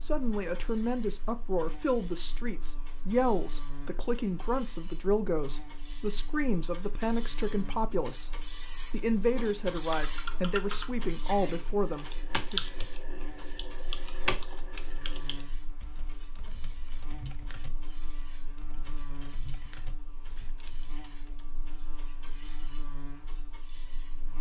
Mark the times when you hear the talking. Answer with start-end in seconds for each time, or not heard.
0.0-12.6.